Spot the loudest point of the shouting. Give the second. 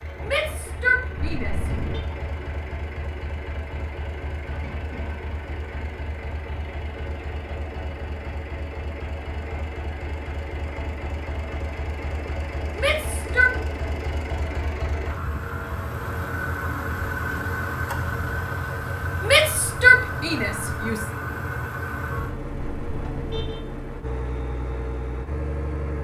20 s.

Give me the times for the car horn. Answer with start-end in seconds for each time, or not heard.
1.1-2.0, 22.6-23.6.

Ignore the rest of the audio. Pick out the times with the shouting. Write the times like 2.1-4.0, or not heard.
0.2-1.7, 12.8-13.6, 19.2-21.1.